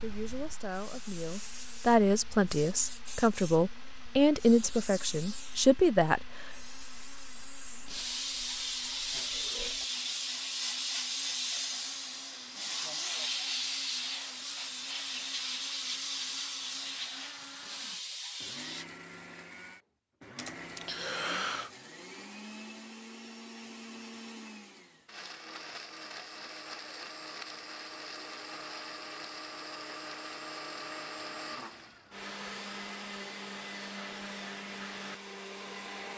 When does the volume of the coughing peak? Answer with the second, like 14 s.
21 s.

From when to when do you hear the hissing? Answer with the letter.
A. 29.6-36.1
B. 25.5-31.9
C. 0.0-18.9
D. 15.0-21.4
C.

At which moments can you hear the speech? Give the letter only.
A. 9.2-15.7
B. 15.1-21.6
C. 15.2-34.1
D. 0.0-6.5
D.